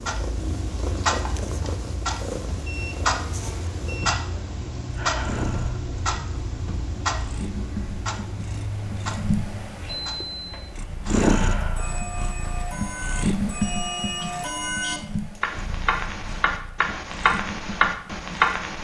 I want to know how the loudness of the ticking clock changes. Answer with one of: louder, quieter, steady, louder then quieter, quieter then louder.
quieter then louder.